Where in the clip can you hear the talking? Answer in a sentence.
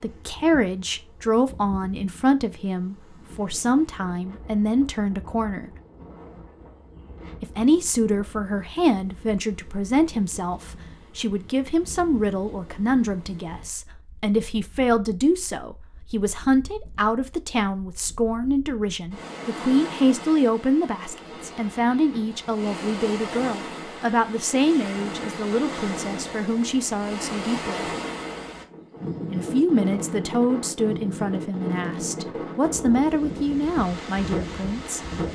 You can hear the talking from 0.0 to 5.7 s, from 7.4 to 27.9 s and from 29.3 to 35.0 s.